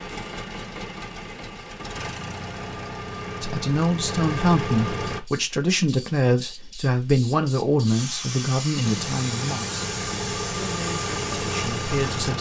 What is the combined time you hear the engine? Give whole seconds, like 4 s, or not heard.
9 s.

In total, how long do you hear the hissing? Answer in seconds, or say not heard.
7 s.